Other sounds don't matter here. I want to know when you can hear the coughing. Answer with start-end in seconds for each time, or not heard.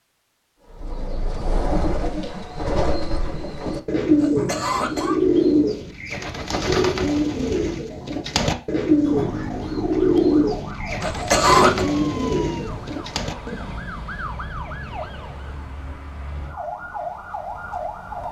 4.2-5.2, 11.0-11.8.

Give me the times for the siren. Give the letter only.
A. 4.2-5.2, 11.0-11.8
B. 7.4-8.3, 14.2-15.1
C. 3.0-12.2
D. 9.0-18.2
D.